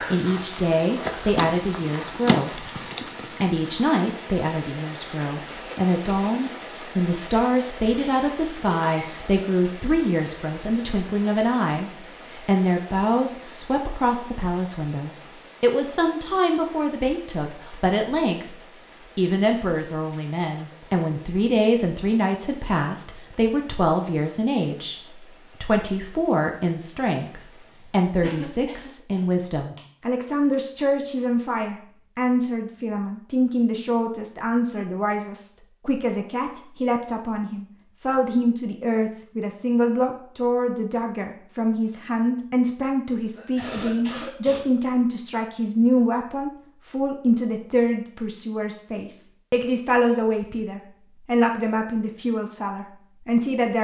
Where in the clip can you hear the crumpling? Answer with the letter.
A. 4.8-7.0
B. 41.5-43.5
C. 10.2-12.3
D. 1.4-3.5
D.